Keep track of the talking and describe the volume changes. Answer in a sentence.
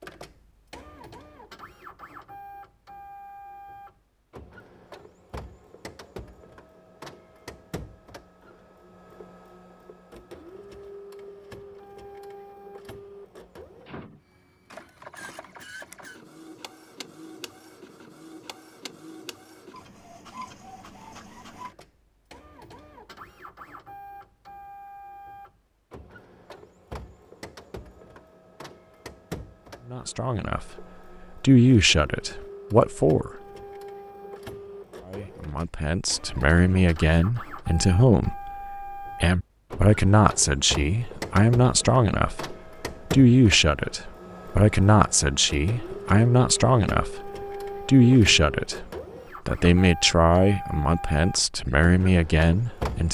The volume of the talking stays about the same.